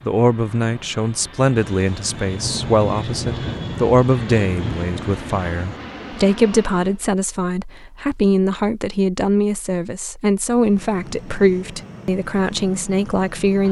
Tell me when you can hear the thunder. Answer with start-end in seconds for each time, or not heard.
1.6-5.8.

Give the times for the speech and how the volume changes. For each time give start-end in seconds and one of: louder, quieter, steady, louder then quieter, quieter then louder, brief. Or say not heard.
0.1-13.6 steady.